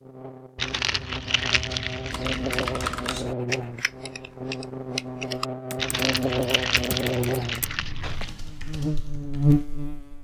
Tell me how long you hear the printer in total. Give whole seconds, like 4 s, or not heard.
not heard.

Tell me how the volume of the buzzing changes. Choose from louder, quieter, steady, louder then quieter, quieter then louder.
louder.